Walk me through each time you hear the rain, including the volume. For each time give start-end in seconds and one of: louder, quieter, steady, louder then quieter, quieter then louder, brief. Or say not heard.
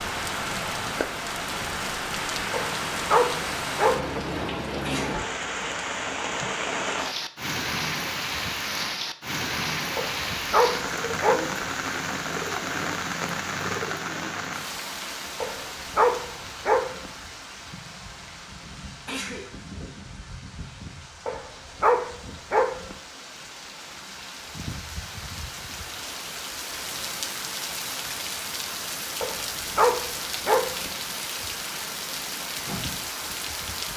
0.0-33.9 quieter then louder.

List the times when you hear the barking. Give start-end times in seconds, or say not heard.
2.5-4.2, 9.9-11.7, 15.4-17.1, 21.2-22.9, 29.2-30.9.